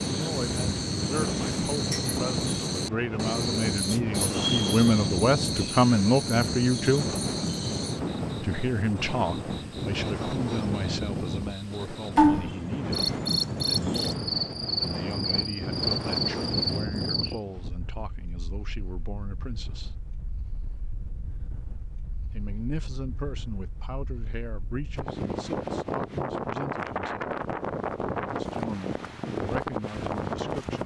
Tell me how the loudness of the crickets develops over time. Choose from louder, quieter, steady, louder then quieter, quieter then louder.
quieter then louder.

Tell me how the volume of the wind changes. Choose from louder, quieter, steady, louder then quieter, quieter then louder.
quieter then louder.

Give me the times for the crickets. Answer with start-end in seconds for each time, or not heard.
0.0-17.4.